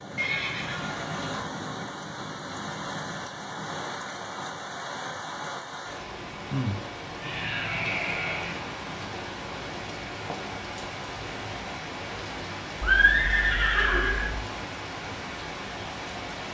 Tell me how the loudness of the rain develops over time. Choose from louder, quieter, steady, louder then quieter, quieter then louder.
steady.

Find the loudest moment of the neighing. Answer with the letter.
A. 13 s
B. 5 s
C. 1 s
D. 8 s
A.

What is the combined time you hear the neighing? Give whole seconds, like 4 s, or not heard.
4 s.